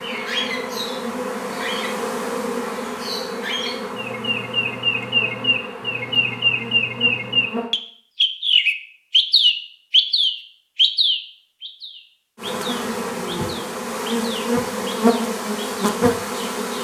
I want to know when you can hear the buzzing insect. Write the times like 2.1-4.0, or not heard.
0.0-7.8, 12.3-16.7.